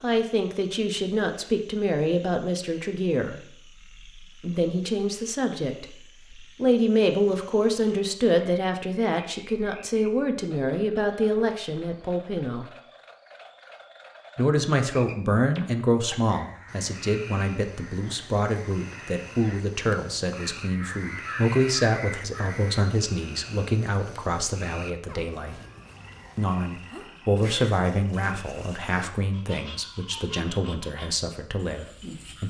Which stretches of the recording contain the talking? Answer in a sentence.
You can hear the talking from 0.0 to 12.7 s, from 14.3 to 25.6 s and from 26.4 to 32.4 s.